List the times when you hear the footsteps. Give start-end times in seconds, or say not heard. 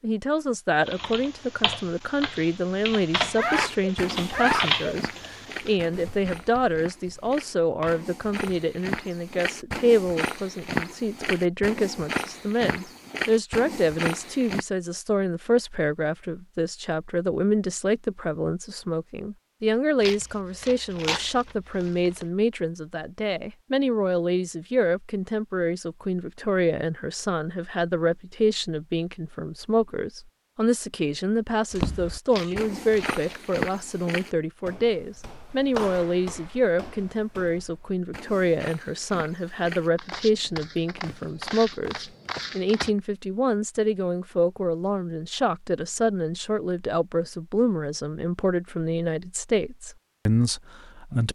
3.4-14.7, 31.7-42.9.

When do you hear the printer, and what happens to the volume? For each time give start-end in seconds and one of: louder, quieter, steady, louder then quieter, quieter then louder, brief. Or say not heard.
not heard.